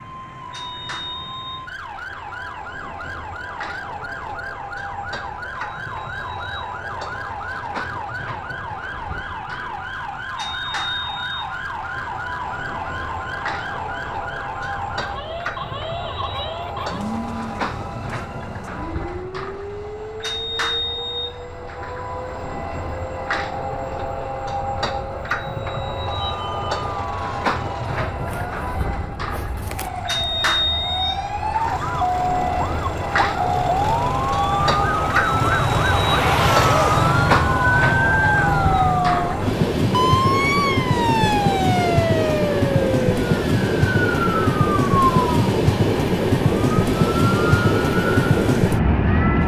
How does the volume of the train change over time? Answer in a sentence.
The loudness of the train goes up.